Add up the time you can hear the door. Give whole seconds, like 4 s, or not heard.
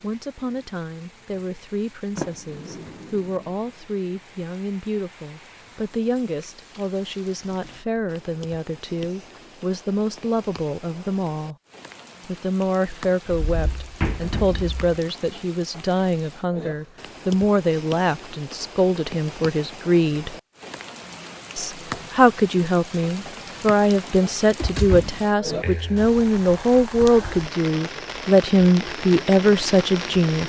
5 s.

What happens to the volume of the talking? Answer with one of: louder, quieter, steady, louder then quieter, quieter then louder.
louder.